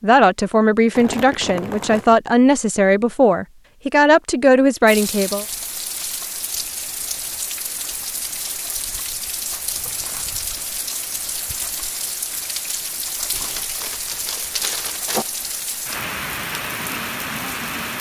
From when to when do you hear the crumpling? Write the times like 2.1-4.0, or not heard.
0.9-2.2, 9.8-10.3, 13.3-15.2.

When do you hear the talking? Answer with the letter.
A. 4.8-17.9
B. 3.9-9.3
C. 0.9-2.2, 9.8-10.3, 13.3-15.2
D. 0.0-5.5
D.